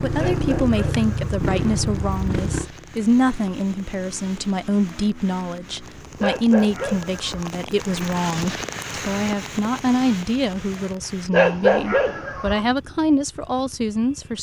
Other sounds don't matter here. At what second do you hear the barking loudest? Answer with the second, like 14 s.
12 s.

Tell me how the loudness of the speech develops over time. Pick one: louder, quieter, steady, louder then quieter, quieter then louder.
steady.